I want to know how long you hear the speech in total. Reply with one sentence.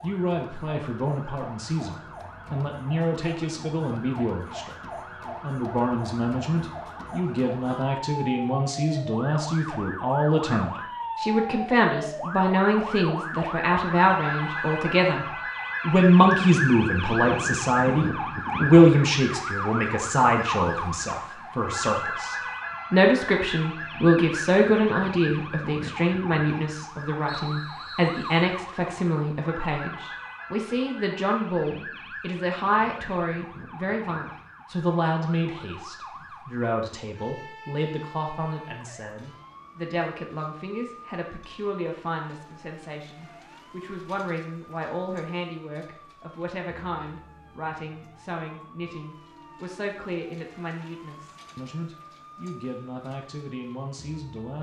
The speech can be heard for 53 seconds in total.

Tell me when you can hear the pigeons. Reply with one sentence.
The pigeons can't be heard in this clip.